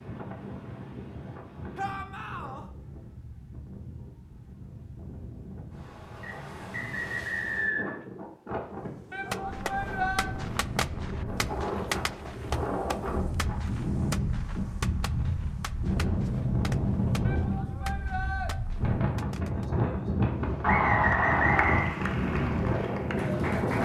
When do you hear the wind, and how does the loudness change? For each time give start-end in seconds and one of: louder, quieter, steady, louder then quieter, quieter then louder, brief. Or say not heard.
0.0-23.8 louder.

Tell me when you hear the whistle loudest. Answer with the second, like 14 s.
21 s.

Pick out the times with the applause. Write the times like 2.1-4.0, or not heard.
21.1-23.8.